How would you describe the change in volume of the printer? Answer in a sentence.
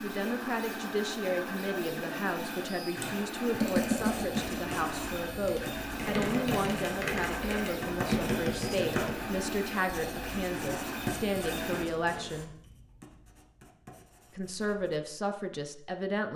The loudness of the printer stays about the same.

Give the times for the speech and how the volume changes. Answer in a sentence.
The speech can be heard from 0.0 to 12.5 s, at a steady volume; and briefly from 14.3 to 16.3 s.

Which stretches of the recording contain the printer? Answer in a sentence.
The printer can be heard from 0.0 to 12.4 s.